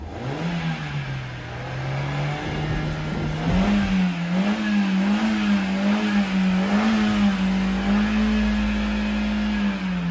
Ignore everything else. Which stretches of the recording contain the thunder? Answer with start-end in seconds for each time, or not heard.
2.4-4.0.